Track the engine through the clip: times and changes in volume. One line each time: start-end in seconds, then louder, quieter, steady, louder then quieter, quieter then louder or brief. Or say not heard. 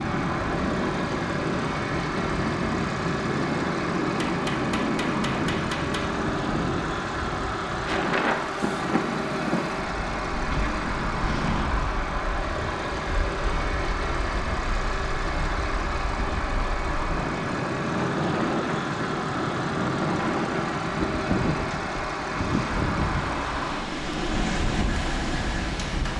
0.0-26.1 steady.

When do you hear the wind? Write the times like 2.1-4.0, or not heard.
0.0-26.1.